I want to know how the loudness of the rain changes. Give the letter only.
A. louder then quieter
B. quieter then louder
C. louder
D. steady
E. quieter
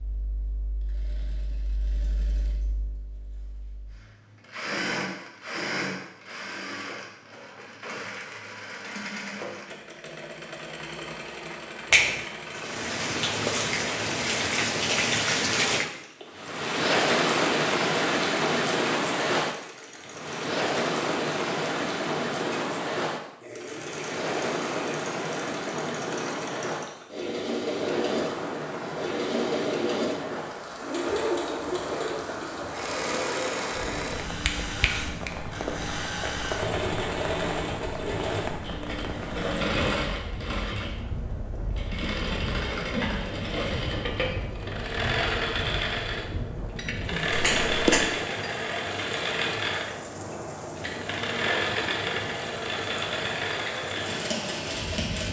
E.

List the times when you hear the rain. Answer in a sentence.
You can hear the rain from 12.4 to 55.2 s.